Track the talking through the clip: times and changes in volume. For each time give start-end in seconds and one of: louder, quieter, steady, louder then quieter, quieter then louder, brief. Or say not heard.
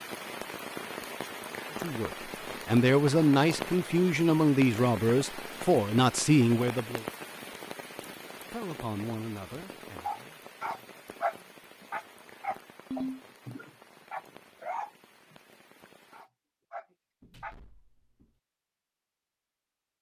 1.7-7.0 steady
8.5-10.4 brief.